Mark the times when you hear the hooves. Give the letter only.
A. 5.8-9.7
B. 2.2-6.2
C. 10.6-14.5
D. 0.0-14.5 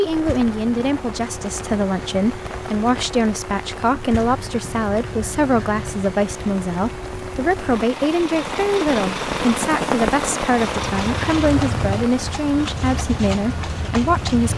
C.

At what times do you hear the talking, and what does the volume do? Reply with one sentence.
You can hear the talking from 0.0 to 14.5 s, at a steady volume.